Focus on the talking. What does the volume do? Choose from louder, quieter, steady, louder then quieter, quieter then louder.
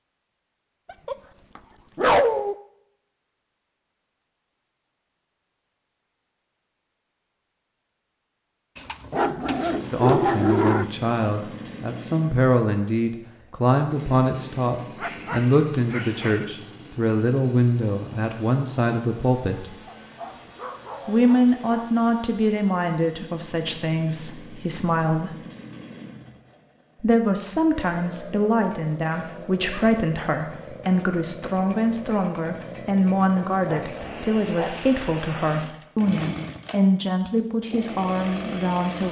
steady.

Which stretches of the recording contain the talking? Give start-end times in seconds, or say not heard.
9.9-19.8, 21.1-25.4, 27.0-39.0.